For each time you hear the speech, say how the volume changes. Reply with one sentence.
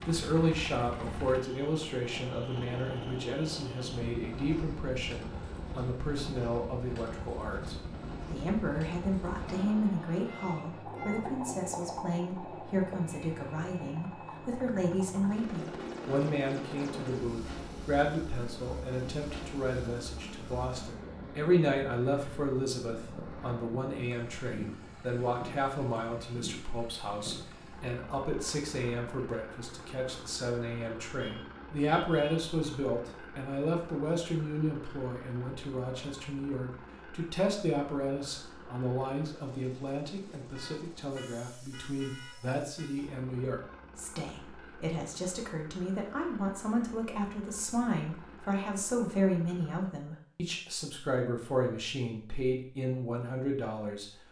The speech can be heard from 0.1 to 54.1 s, at a steady volume.